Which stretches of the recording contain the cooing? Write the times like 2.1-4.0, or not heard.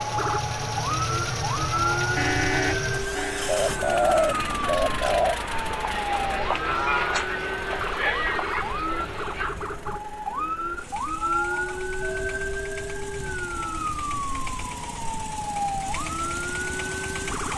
3.5-5.3.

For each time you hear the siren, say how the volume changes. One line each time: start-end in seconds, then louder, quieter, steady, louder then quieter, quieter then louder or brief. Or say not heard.
0.0-17.5 steady.